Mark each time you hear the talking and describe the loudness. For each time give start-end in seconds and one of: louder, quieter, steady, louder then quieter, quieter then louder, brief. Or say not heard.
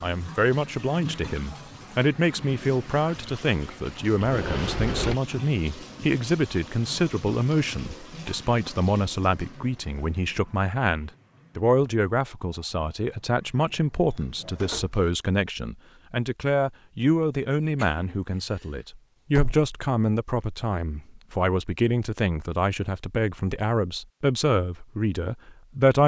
0.0-26.0 steady.